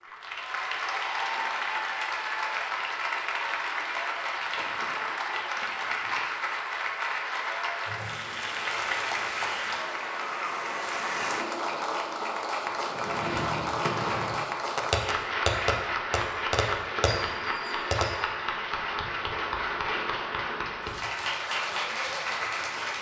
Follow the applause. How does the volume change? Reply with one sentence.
The loudness of the applause stays about the same.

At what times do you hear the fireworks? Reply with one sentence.
The fireworks can be heard from 12.8 to 18.2 s.